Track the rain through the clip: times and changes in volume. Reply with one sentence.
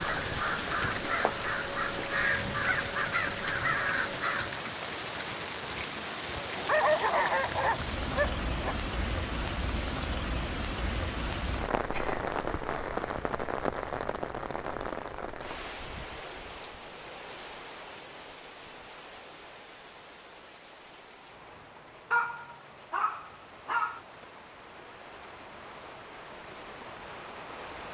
You can hear the rain from 0.0 to 27.8 s, getting quieter.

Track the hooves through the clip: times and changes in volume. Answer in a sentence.
The hooves can't be heard in this clip.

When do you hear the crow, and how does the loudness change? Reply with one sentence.
You can hear the crow from 0.0 to 4.5 s, at a steady volume.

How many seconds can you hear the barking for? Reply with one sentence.
The barking can be heard for 4 seconds in total.